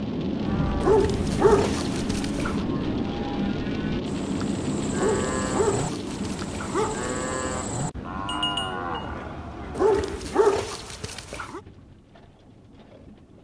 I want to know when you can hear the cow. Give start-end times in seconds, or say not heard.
0.3-10.2.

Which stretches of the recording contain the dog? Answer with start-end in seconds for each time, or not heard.
0.8-2.6, 5.0-7.1, 9.7-11.6.